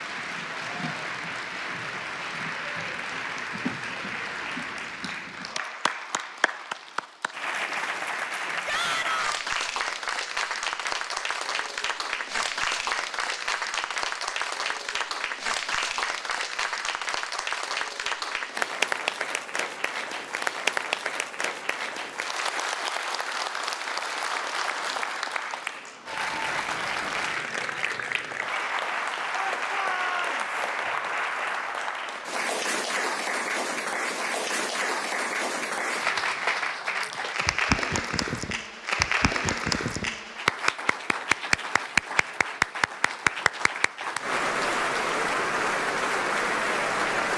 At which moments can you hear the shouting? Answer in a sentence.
You can hear the shouting from 8.7 to 9.4 s and from 29.3 to 30.4 s.